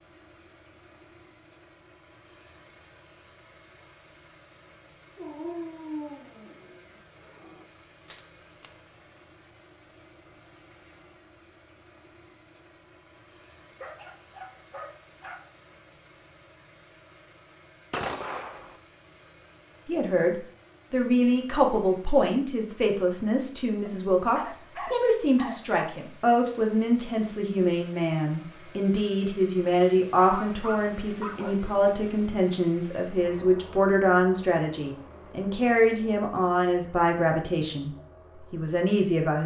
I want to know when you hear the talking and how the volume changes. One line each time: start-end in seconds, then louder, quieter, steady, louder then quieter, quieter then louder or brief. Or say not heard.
19.9-37.9 steady
38.5-39.4 brief.